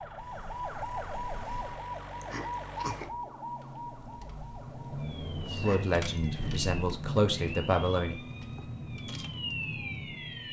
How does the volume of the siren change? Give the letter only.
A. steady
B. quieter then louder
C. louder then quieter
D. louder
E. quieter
B.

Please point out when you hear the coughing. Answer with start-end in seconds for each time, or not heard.
2.2-3.1, 5.5-6.0.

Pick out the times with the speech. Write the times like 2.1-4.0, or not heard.
5.5-8.2.